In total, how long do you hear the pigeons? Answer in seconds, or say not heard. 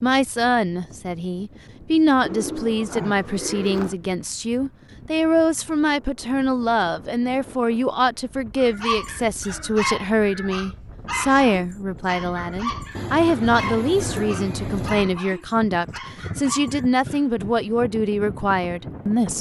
4 s.